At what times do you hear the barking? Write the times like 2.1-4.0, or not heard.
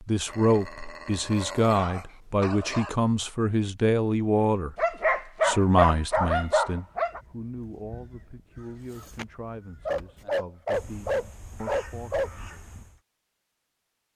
0.2-3.0, 4.8-7.2, 9.8-12.3.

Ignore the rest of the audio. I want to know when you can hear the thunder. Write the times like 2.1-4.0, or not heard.
not heard.